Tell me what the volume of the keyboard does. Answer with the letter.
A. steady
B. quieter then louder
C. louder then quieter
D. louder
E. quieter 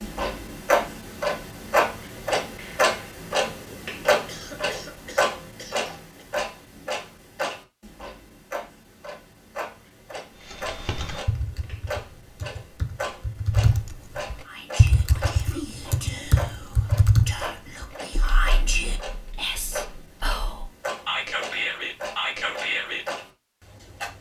C.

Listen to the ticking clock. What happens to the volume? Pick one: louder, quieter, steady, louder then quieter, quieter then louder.
quieter.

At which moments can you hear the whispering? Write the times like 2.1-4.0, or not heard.
14.4-23.1.